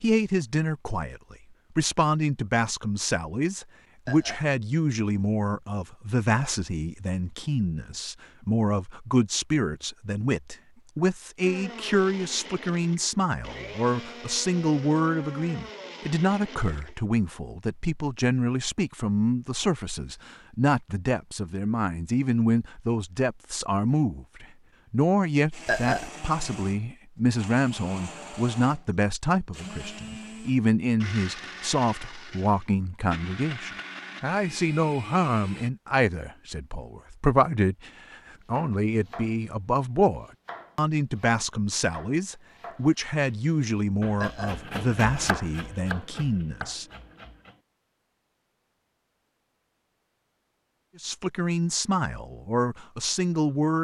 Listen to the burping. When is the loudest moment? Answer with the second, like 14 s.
26 s.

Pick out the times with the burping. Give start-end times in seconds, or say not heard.
4.0-4.5, 25.6-26.1, 44.1-44.6.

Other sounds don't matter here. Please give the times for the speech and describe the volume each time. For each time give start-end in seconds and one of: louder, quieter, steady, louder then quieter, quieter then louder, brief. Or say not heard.
0.0-46.9 steady
51.0-53.8 brief.